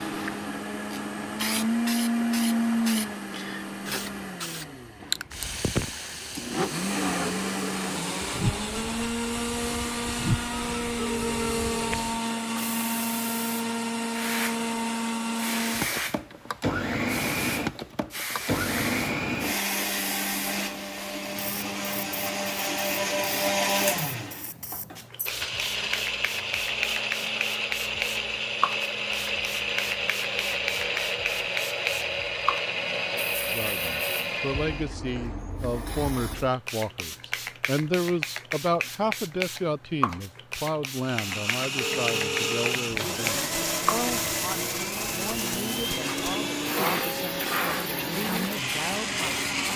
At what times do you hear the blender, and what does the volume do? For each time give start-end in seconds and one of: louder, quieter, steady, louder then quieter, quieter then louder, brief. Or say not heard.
0.0-34.9 steady
41.0-49.7 steady.